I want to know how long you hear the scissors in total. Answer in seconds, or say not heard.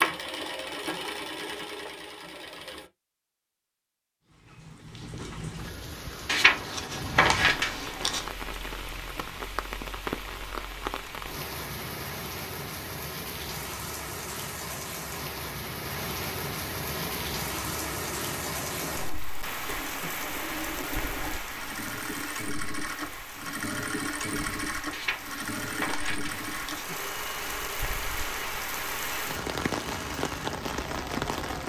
4 s.